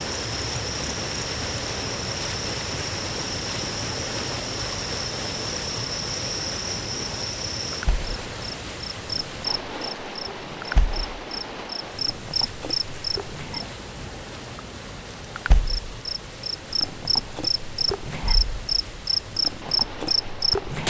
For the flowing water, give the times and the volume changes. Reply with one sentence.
You can hear the flowing water from 0.0 to 20.8 s, getting quieter.